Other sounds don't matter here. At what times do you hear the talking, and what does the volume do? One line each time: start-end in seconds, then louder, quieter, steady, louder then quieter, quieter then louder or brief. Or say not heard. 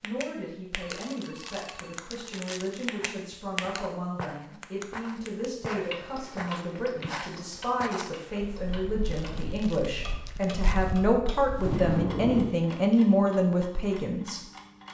0.0-14.4 louder.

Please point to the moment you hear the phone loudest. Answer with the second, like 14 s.
12 s.